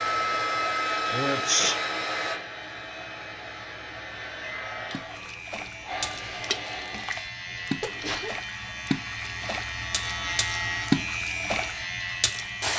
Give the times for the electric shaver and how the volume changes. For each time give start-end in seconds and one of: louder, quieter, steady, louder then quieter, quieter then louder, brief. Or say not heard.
0.0-12.7 louder.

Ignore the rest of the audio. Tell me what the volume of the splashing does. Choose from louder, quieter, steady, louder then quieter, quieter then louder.
louder.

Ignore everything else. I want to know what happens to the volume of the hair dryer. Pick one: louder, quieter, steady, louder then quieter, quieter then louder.
quieter.